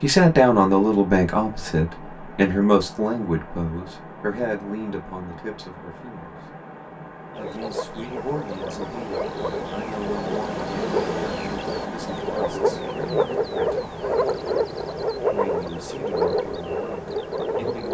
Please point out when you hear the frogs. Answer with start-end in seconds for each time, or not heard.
7.3-17.8.